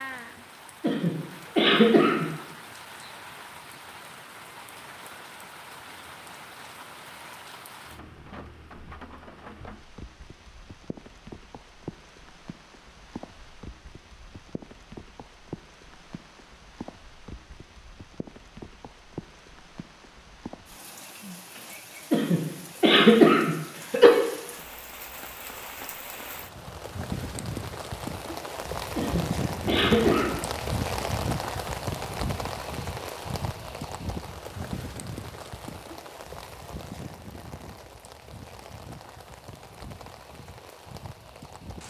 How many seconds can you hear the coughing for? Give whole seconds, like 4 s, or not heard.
5 s.